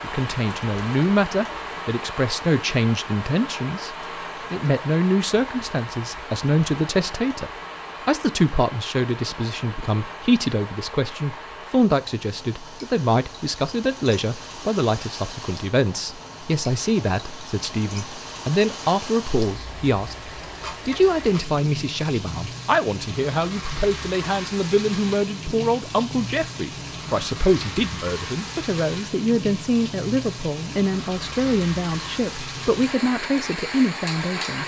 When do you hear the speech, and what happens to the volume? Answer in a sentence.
You can hear the speech from 0.0 to 34.6 s, at a steady volume.